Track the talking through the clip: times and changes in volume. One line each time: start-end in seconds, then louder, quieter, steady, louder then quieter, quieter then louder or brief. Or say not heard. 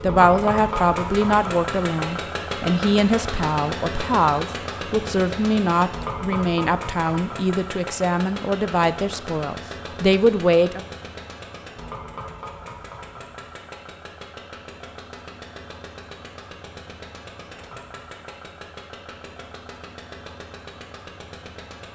0.0-10.8 steady.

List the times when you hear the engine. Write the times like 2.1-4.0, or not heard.
0.0-21.9.